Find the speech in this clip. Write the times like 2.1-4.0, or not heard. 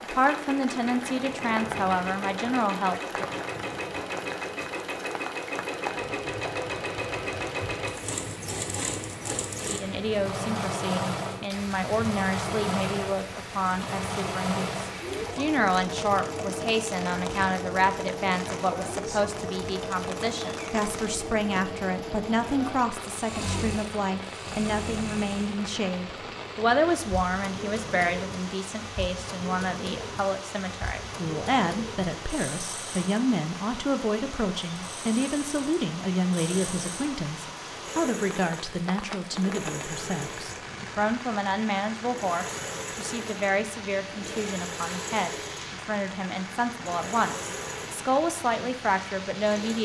0.0-3.3, 9.6-49.7.